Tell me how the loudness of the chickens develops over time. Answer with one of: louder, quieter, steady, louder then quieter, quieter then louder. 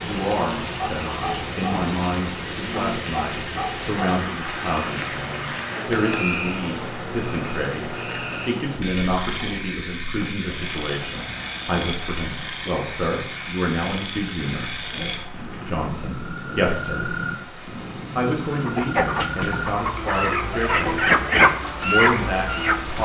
louder.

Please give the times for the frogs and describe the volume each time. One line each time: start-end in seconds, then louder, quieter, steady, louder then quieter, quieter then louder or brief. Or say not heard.
0.0-22.9 steady.